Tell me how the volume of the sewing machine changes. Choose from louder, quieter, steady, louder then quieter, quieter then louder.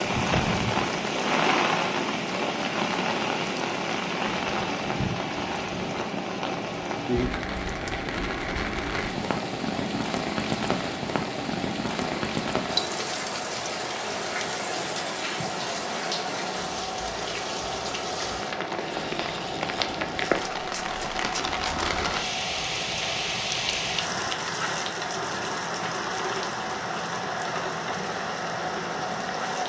steady.